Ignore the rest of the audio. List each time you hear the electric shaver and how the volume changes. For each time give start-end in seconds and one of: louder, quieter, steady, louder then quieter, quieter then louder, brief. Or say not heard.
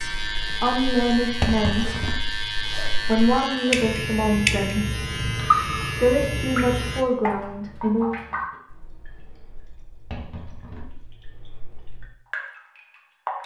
0.0-7.0 steady.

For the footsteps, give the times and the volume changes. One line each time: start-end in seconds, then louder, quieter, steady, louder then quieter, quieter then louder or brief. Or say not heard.
not heard.